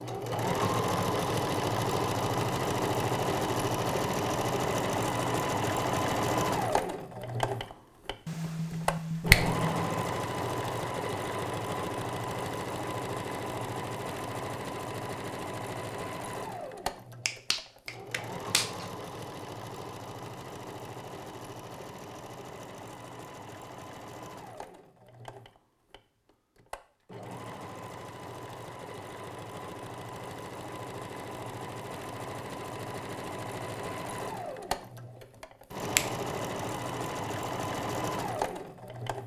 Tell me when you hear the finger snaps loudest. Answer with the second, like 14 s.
9 s.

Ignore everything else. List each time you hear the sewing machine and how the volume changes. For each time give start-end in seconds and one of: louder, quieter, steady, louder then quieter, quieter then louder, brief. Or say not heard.
0.0-39.2 quieter then louder.